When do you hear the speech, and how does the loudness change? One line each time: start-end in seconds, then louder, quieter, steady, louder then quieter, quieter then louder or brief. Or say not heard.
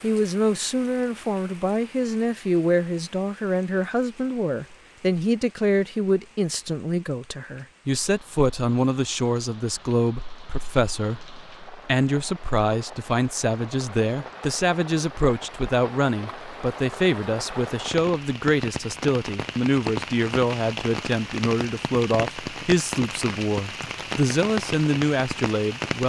0.0-26.0 steady.